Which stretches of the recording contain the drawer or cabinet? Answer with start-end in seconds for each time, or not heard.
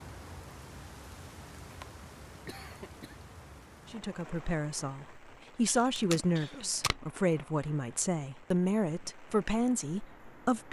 not heard.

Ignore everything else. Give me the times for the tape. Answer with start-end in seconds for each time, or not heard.
6.0-7.0.